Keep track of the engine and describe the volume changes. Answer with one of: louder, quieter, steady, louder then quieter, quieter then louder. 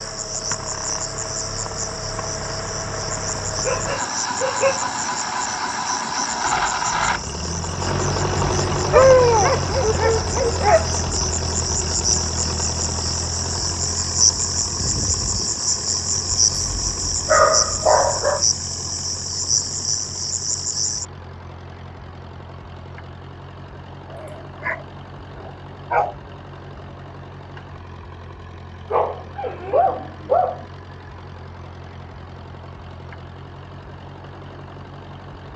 quieter.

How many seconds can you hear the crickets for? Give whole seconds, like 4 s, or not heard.
21 s.